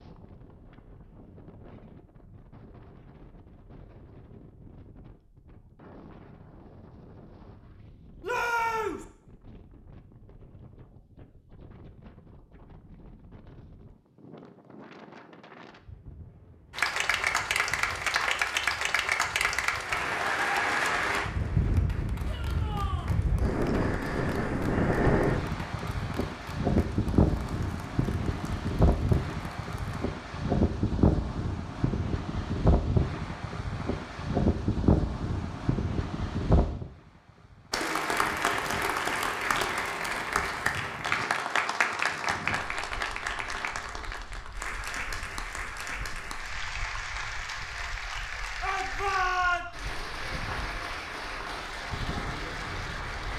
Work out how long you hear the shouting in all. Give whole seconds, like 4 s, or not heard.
3 s.